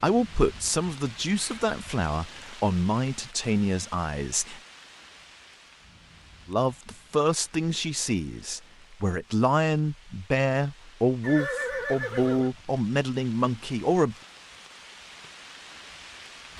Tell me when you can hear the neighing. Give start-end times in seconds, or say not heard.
11.2-12.5.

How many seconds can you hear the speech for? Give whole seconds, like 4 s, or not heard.
12 s.